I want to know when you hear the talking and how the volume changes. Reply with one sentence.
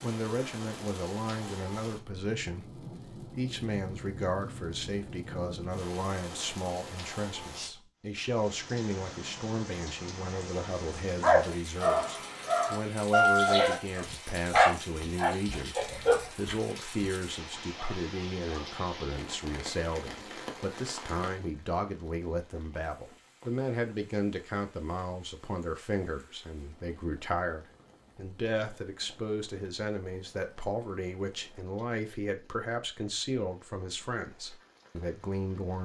The talking can be heard from 0.0 to 35.8 s, at a steady volume.